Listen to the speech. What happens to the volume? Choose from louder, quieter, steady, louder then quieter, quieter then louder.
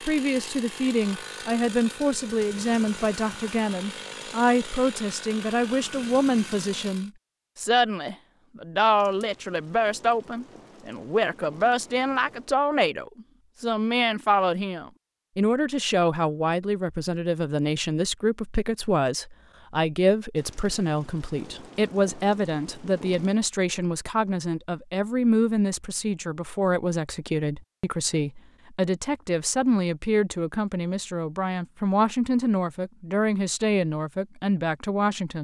steady.